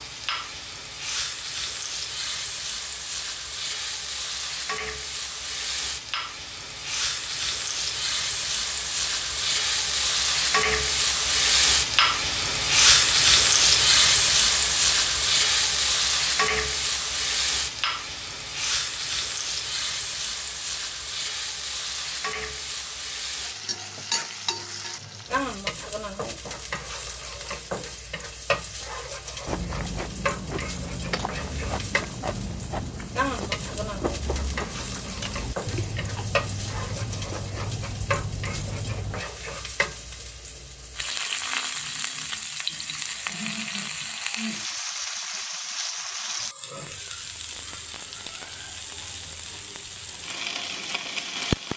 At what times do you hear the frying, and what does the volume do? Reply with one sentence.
You can hear the frying from 0.0 to 51.7 s, getting louder then quieter.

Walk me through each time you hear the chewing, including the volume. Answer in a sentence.
You can hear the chewing from 29.4 to 39.2 s, at a steady volume.